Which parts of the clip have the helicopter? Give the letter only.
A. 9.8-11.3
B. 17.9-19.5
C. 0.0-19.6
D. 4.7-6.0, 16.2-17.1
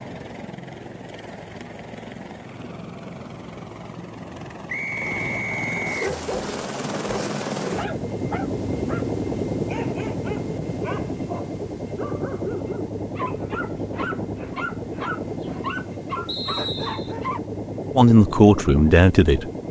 C.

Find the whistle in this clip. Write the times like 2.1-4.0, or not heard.
4.7-6.0, 16.2-17.1.